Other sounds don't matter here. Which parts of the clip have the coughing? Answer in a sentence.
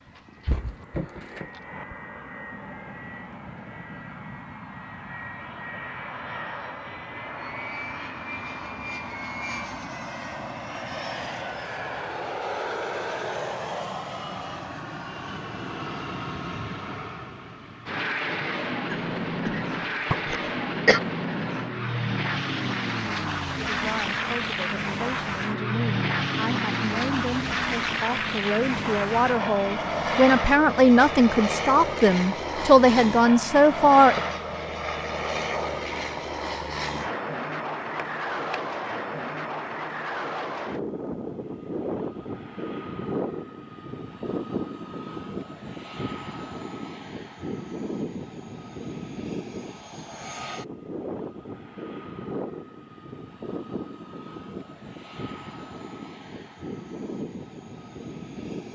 The coughing can be heard from 18.9 to 21.0 s.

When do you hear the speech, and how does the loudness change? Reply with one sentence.
The speech can be heard from 23.6 to 34.2 s, getting louder.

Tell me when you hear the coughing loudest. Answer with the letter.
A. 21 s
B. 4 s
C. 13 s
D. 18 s
A.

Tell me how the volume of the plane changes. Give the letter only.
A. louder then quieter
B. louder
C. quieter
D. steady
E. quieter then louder
A.